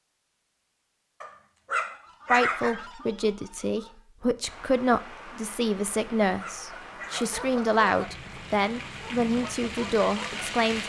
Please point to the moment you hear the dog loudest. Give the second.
2 s.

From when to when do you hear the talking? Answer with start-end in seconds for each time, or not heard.
2.3-10.8.